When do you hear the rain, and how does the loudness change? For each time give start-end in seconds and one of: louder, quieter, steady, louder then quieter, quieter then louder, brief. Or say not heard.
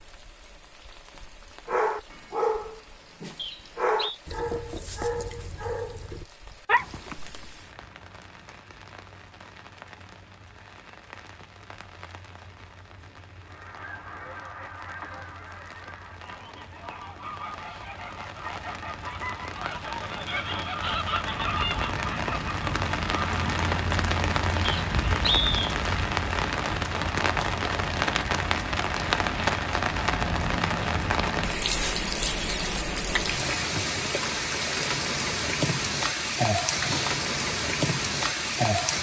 0.0-38.9 louder.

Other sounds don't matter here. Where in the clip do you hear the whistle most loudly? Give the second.
25 s.